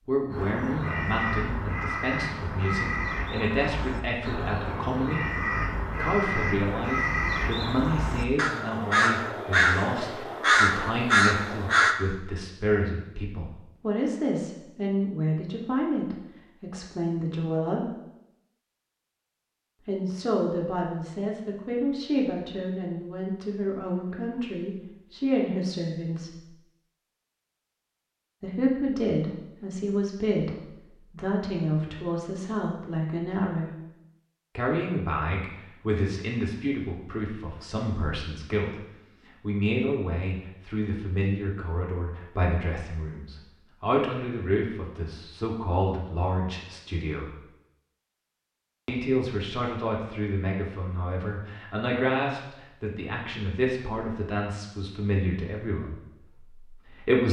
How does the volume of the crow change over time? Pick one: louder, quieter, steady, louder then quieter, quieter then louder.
louder.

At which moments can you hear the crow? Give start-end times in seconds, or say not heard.
0.3-11.9.